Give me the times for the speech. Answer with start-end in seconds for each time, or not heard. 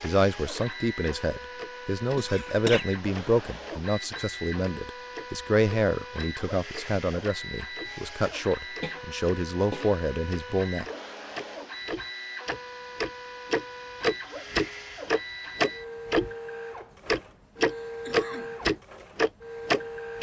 0.0-10.8.